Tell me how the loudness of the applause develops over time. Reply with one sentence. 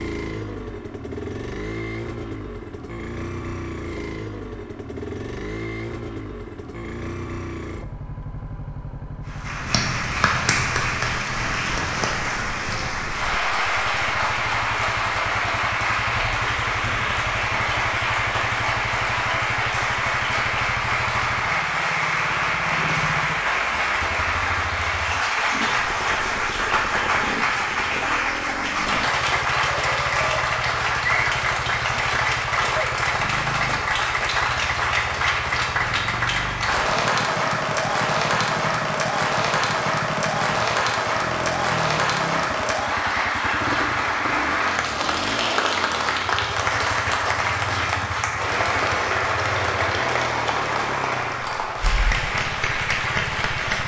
The loudness of the applause stays about the same.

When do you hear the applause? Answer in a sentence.
The applause can be heard from 9.2 to 53.8 s.